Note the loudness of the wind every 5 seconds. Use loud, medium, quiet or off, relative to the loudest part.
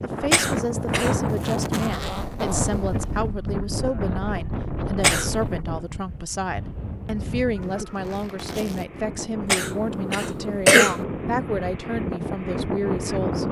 loud, medium, loud.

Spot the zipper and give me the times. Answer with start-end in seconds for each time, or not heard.
1.2-3.3, 7.6-8.8.